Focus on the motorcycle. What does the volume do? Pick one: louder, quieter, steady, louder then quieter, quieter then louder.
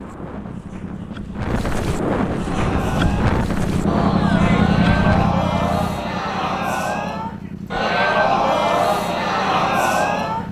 louder then quieter.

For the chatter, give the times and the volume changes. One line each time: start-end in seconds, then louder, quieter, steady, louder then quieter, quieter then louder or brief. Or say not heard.
2.3-10.4 louder.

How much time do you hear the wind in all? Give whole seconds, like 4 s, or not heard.
5 s.